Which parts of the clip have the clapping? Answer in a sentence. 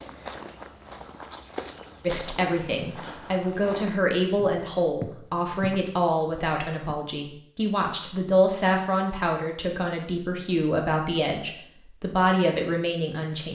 The clapping can't be heard in this clip.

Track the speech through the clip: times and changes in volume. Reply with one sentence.
You can hear the speech from 2.0 to 13.4 s, at a steady volume.